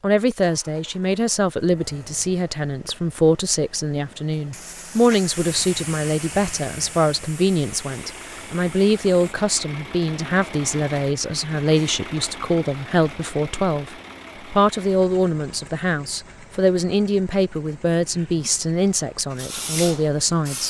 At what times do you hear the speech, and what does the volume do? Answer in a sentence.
The speech can be heard from 0.0 to 20.6 s, at a steady volume.